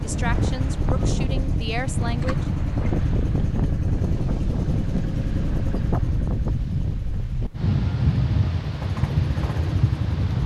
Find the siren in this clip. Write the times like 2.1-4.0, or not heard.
not heard.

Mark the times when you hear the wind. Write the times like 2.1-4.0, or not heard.
0.0-10.4.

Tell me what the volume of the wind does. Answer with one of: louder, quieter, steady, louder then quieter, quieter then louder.
steady.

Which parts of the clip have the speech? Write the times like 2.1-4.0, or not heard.
0.0-2.5.